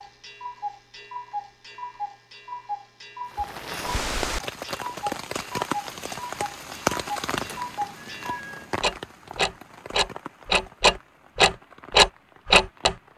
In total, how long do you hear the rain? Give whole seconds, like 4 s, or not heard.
10 s.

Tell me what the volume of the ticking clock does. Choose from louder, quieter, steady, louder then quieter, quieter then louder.
louder.